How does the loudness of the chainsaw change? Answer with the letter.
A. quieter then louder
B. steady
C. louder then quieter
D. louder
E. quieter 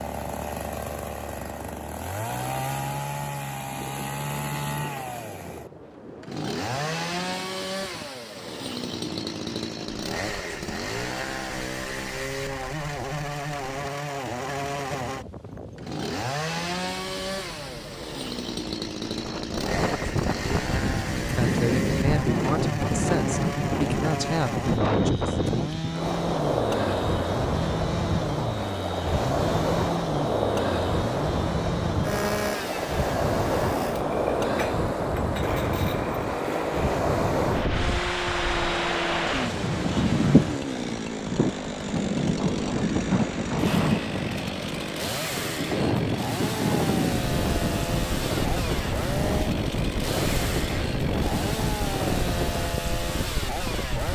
B.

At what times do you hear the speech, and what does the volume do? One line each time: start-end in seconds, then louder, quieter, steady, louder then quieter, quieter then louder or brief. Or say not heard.
21.1-25.4 steady.